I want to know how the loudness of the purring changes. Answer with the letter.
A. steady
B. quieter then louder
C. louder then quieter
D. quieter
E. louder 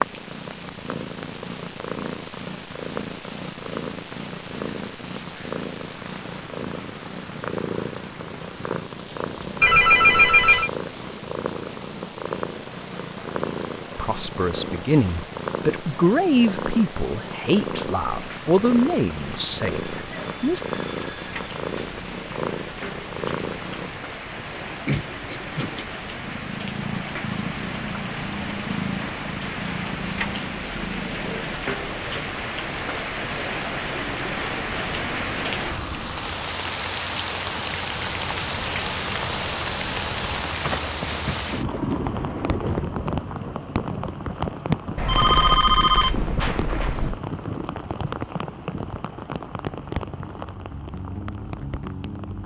A.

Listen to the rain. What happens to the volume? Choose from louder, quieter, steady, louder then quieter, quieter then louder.
louder.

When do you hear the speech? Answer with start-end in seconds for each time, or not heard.
13.9-20.6.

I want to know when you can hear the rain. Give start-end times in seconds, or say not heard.
0.0-52.4.